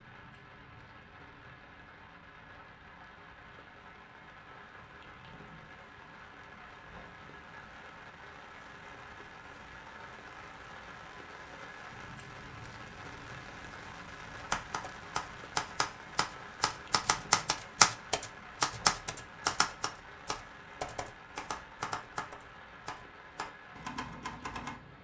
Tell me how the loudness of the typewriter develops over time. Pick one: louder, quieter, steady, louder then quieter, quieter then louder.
louder then quieter.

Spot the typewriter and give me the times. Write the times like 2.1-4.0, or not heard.
14.3-24.8.